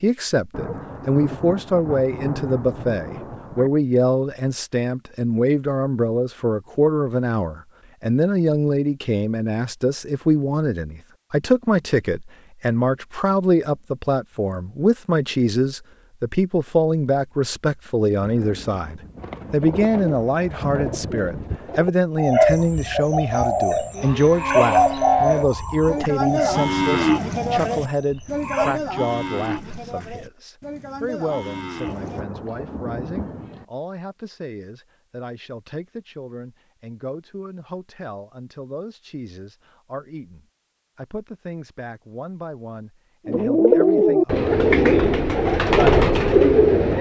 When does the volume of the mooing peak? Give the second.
27 s.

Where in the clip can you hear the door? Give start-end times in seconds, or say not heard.
not heard.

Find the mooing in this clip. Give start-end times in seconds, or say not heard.
23.3-32.2.